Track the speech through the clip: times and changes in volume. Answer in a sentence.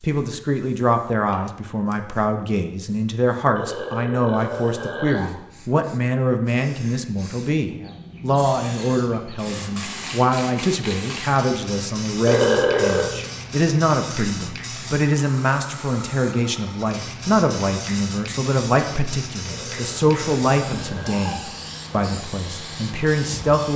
The speech can be heard from 0.0 to 23.7 s, at a steady volume.